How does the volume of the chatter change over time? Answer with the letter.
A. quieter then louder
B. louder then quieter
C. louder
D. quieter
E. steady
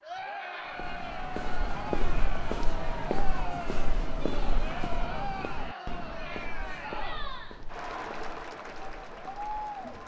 E.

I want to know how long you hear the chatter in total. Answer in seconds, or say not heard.
10 s.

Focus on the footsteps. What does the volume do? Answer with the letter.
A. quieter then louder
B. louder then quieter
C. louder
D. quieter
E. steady
D.